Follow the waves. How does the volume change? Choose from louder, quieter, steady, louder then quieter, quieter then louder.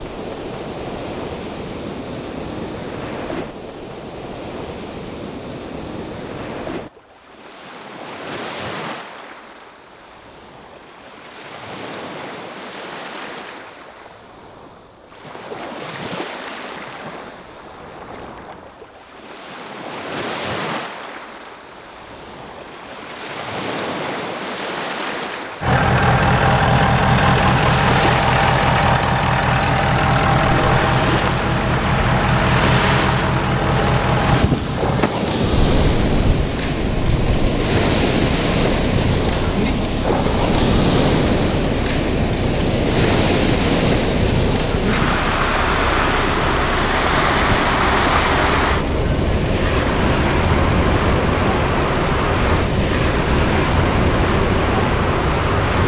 louder.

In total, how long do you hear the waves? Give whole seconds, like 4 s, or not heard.
56 s.